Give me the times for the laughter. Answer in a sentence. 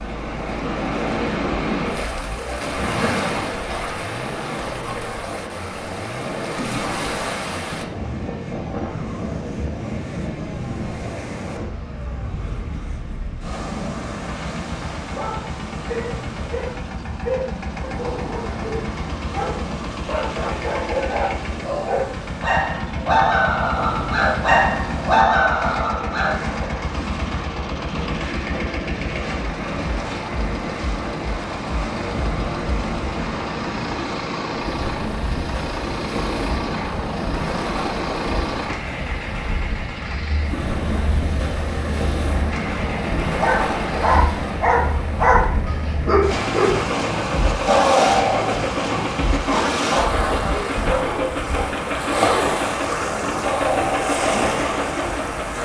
The laughter can be heard from 2.6 to 3.3 s.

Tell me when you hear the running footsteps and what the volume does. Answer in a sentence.
You can't hear the running footsteps here.